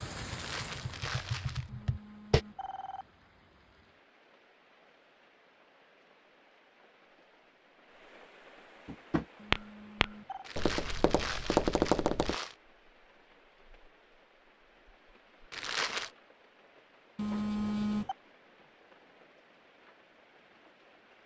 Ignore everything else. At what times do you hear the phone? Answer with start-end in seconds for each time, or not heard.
1.6-3.0, 9.3-10.5, 17.1-18.1.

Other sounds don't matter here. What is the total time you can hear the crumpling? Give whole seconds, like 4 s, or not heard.
4 s.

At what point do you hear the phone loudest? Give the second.
18 s.